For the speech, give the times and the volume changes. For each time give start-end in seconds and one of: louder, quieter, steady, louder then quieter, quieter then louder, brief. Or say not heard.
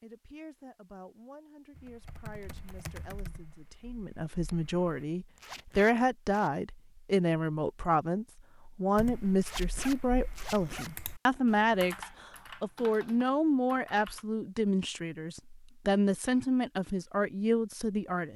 0.0-18.3 louder.